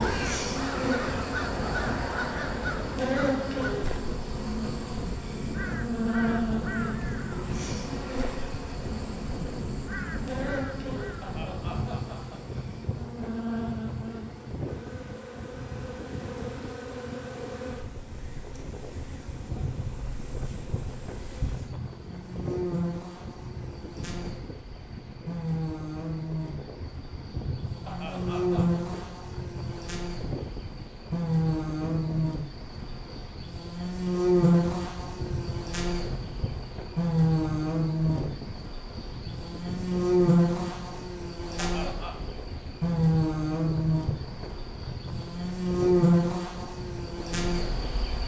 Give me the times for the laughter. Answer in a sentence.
The laughter can be heard from 11.2 to 12.4 s, from 27.9 to 28.8 s and from 41.5 to 42.2 s.